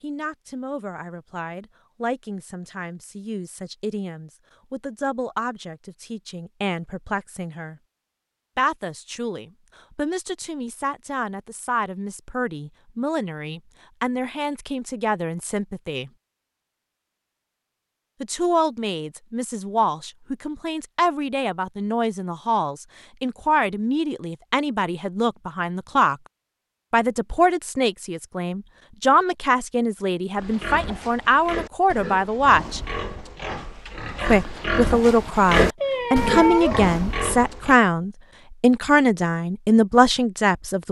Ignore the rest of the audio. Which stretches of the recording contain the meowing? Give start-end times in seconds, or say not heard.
35.8-36.8.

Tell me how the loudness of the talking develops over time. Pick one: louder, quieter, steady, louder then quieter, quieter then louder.
louder.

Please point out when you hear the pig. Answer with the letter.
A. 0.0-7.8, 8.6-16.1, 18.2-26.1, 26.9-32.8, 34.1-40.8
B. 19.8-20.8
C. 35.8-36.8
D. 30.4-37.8
D.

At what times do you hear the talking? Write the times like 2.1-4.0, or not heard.
0.0-7.8, 8.6-16.1, 18.2-26.1, 26.9-32.8, 34.1-40.8.